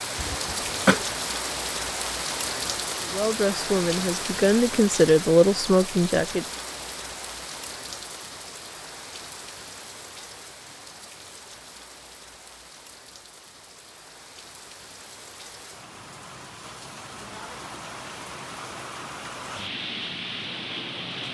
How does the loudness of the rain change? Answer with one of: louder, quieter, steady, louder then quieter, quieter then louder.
quieter then louder.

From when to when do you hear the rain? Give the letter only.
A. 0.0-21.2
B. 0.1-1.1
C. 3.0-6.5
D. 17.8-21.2
A.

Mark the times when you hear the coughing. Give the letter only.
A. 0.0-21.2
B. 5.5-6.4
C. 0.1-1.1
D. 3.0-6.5
C.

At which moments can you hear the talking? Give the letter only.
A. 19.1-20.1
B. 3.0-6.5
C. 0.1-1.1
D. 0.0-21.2
B.